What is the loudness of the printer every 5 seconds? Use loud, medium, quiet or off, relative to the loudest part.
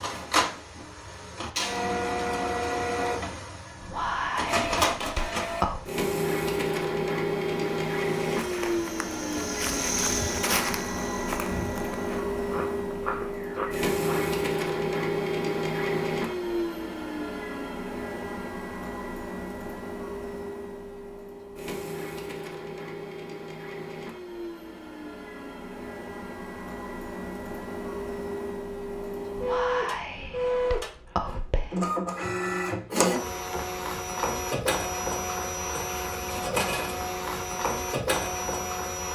loud, loud, loud, loud, medium, medium, loud, loud.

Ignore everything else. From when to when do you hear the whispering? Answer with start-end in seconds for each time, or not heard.
3.8-5.9, 29.4-31.8.